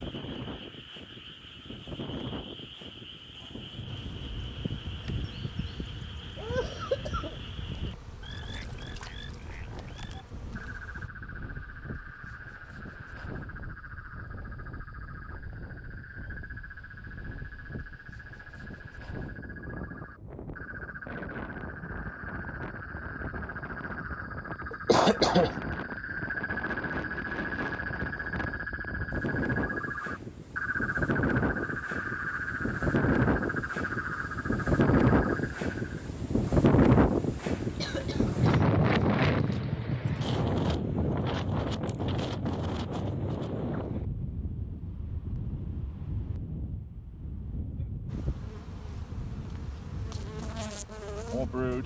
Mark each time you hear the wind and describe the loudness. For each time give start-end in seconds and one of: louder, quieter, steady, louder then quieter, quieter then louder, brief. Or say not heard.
0.0-51.8 louder then quieter.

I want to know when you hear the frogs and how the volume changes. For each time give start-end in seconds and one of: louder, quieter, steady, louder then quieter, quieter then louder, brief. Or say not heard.
0.0-36.1 louder.